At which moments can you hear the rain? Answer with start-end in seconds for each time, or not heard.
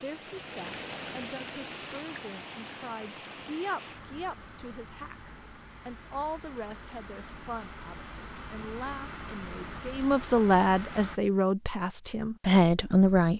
0.0-11.2.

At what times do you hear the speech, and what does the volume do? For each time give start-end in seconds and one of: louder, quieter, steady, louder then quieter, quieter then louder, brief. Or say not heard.
0.0-13.3 louder.